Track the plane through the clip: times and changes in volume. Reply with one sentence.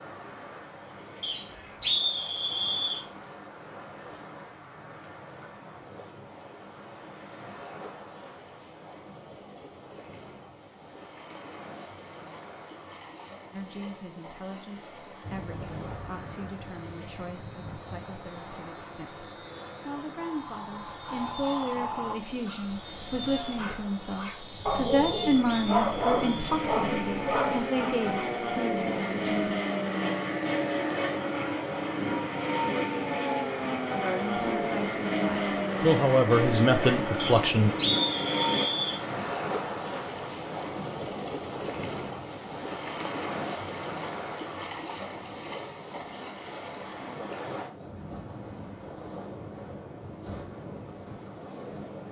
You can hear the plane from 15.2 to 38.6 s, getting louder.